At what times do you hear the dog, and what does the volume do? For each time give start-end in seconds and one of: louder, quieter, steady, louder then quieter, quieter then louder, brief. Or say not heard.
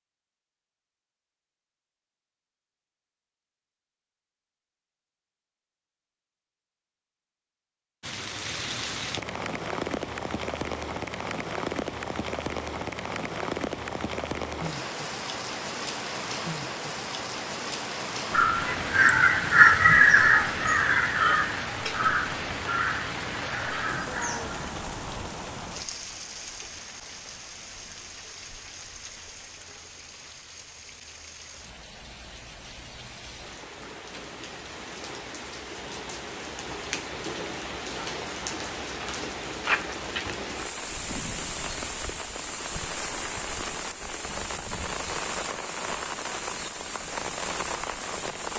not heard.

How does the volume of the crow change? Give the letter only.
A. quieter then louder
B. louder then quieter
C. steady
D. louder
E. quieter
E.